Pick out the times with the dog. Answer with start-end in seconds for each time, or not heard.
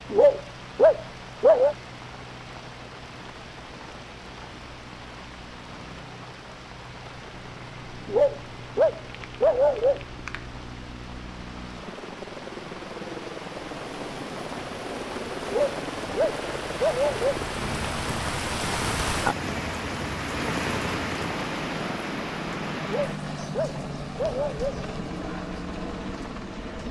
0.1-1.8, 8.1-10.0, 15.4-17.4, 22.9-24.8.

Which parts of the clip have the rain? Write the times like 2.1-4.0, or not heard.
0.0-26.8.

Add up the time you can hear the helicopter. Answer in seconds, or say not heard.
27 s.